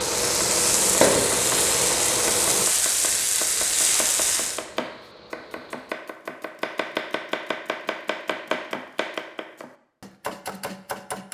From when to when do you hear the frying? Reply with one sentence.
The frying can be heard from 0.0 to 4.7 s.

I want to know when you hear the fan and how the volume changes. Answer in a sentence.
The fan can be heard from 0.0 to 6.0 s, getting quieter.